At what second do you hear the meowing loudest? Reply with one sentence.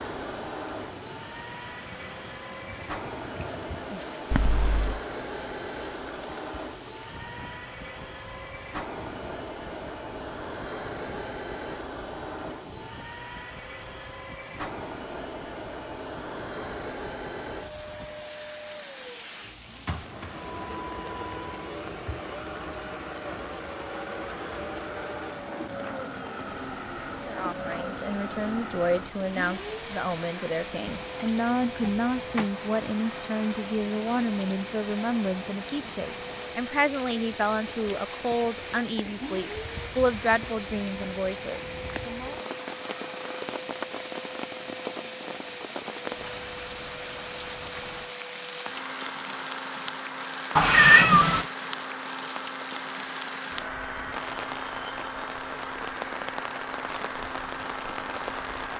The loudest moment of the meowing is at 51 seconds.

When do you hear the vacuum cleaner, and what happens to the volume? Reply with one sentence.
The vacuum cleaner can be heard from 0.0 to 58.7 s, at a steady volume.